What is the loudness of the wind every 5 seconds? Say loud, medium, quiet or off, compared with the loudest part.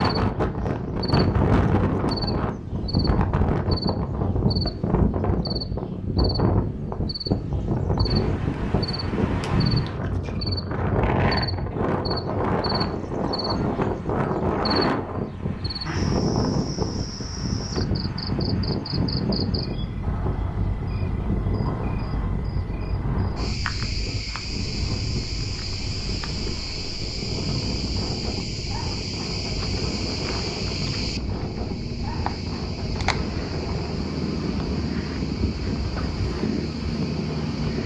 loud, loud, loud, loud, medium, medium, medium, medium.